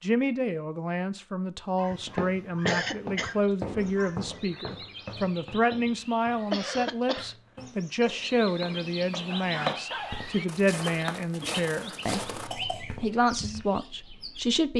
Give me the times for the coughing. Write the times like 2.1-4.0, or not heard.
2.6-3.4, 6.5-7.3, 12.2-13.1.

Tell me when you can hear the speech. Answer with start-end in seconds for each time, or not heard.
0.0-14.7.